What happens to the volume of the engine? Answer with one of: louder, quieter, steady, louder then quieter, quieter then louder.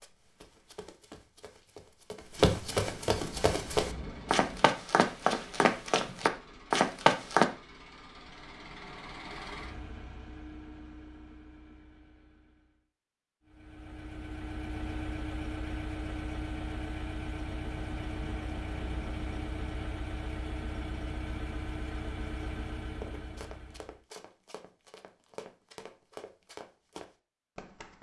louder.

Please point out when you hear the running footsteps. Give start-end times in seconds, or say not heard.
0.0-7.5, 23.0-27.9.